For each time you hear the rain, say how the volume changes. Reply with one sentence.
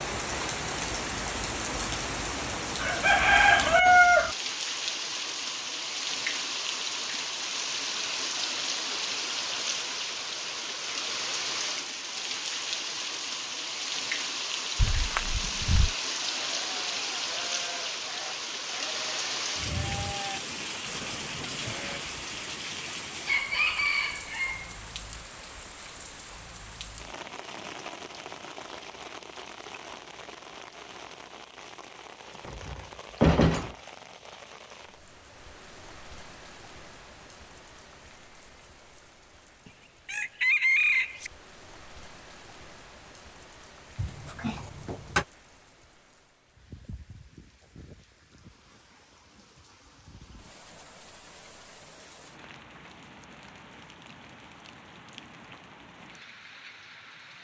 The rain can be heard from 0.0 to 57.3 s, getting quieter.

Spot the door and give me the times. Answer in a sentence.
You can hear the door from 14.8 to 15.9 s, from 32.5 to 33.8 s and from 44.0 to 45.2 s.